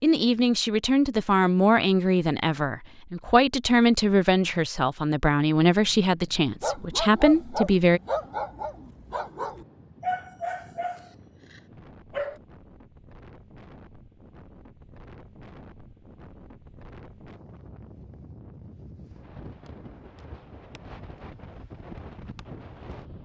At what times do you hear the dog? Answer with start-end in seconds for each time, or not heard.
6.6-12.4.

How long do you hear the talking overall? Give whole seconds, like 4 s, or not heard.
8 s.